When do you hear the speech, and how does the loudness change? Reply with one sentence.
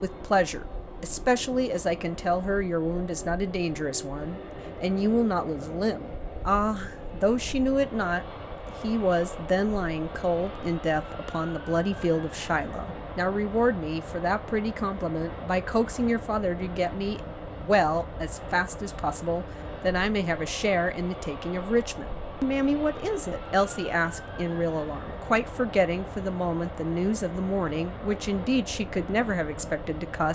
You can hear the speech from 0.0 to 30.2 s, at a steady volume.